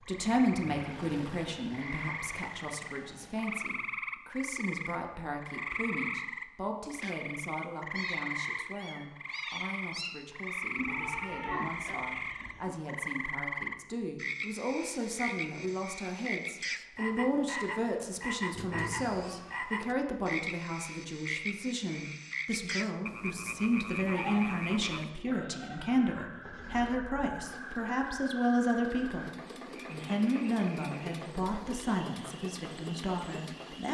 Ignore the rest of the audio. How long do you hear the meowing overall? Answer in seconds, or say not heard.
4 s.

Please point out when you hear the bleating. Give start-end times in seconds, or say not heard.
10.8-12.8, 24.0-27.0.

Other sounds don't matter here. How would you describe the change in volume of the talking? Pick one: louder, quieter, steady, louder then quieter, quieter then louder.
quieter then louder.